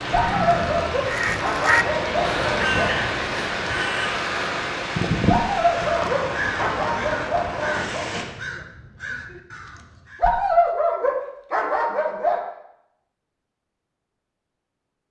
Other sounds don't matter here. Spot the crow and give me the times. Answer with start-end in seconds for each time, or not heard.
1.1-10.3.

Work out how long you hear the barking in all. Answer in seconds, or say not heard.
8 s.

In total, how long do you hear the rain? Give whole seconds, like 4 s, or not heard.
8 s.